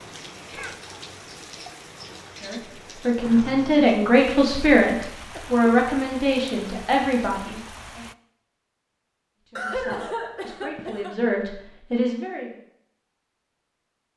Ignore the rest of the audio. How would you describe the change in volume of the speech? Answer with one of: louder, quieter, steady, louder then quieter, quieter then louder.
quieter then louder.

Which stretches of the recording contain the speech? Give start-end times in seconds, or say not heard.
2.4-8.0, 9.5-12.5.